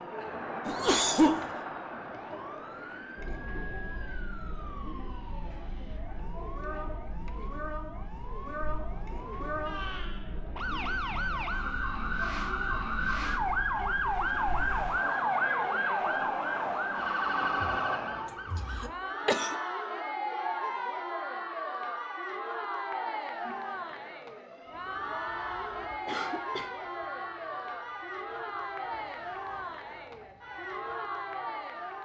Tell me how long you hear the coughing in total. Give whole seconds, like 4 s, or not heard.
2 s.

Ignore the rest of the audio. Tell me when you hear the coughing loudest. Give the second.
1 s.